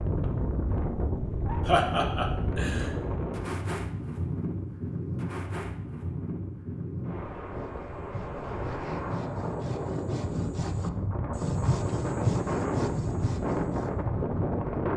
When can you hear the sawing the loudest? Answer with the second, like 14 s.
12 s.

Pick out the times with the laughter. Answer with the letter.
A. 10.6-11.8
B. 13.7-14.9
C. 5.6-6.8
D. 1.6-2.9
D.